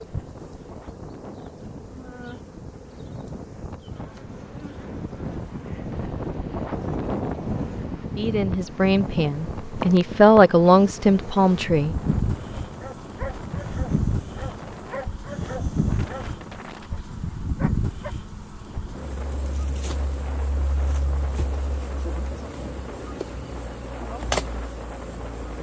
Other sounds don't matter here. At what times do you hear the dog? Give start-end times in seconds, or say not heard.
12.8-18.1.